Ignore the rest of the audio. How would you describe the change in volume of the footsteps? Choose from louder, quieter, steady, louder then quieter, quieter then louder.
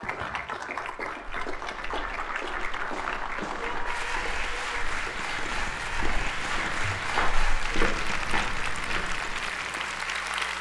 louder.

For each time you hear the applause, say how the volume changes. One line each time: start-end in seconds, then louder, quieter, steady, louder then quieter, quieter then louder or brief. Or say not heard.
0.0-10.5 steady.